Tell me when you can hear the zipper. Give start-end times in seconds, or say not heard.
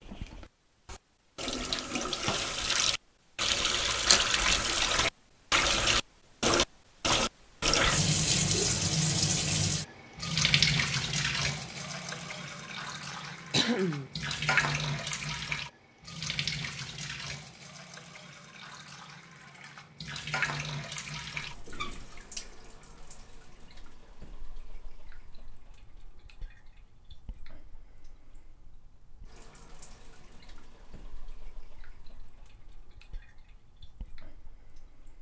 not heard.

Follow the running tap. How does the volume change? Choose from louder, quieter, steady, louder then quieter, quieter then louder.
quieter.